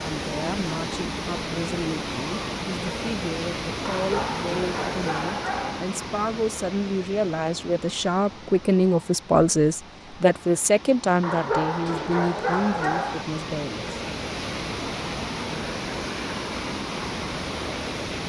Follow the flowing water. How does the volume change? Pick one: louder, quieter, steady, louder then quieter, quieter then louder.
quieter then louder.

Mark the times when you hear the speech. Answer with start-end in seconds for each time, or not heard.
0.0-13.9.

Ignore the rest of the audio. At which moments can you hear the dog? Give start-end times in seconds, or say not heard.
3.9-5.8, 11.2-13.2.